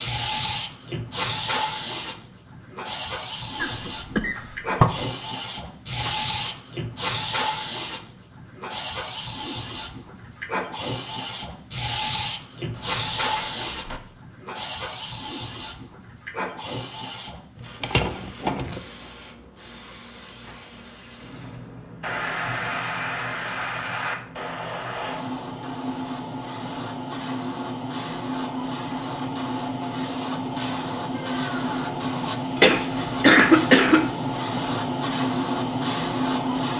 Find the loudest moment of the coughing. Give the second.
33 s.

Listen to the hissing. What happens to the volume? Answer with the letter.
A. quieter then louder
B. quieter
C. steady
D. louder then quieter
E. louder
A.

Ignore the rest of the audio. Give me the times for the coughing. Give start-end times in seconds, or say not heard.
3.6-5.0, 17.8-18.8, 32.5-34.0.